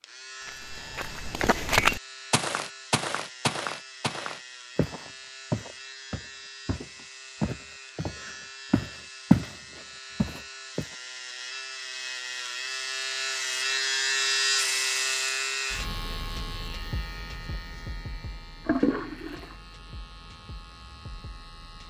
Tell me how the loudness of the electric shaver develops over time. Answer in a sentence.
The volume of the electric shaver goes up, then down.